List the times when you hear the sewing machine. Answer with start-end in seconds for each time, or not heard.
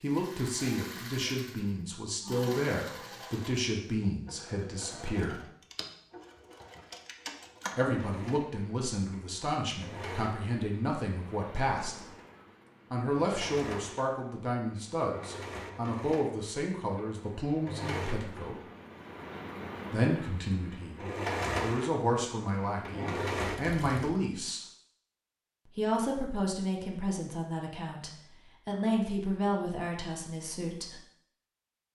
0.0-24.1.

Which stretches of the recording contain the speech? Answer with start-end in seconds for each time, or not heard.
0.0-5.4, 7.8-12.0, 12.9-18.6, 19.9-24.6, 25.6-31.0.